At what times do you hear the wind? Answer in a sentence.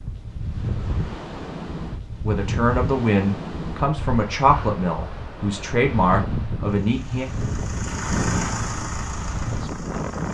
You can hear the wind from 0.0 to 10.2 s.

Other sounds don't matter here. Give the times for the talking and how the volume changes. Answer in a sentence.
You can hear the talking from 2.2 to 7.3 s, at a steady volume.